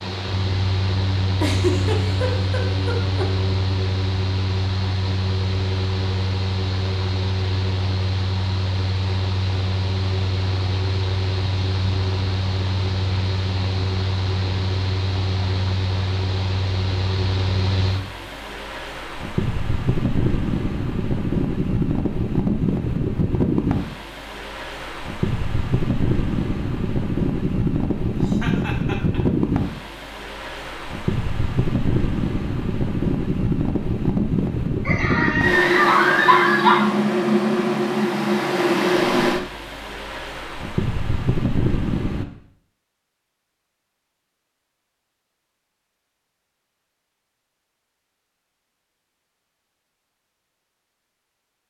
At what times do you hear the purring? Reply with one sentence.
The purring can't be heard in this clip.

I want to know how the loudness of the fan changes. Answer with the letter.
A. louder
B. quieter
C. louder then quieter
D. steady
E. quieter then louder
A.